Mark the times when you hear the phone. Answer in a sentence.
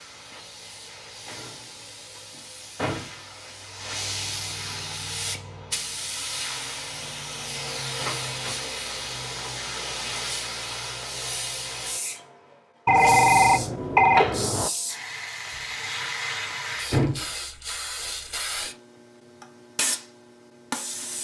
You can hear the phone from 12.8 to 14.7 s.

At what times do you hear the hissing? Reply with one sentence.
The hissing can be heard from 0.0 to 21.1 s.